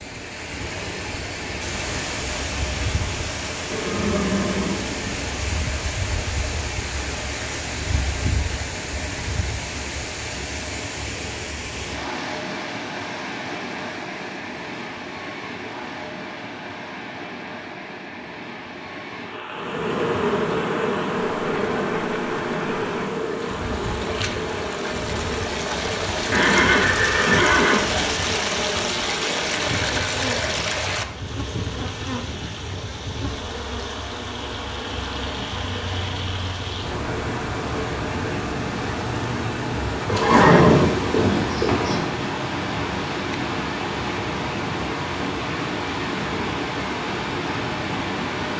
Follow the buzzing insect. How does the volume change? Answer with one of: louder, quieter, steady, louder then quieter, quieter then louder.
quieter.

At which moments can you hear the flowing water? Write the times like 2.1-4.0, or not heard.
0.0-48.5.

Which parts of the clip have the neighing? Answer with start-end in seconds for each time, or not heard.
3.6-5.2, 26.3-28.1, 40.0-42.0.